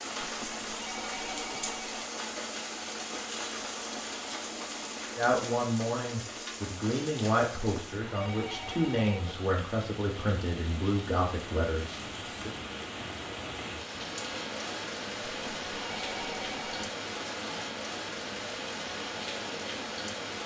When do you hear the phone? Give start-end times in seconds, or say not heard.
0.2-2.0, 7.5-9.4, 15.2-16.9.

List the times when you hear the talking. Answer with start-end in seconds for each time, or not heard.
5.2-12.5.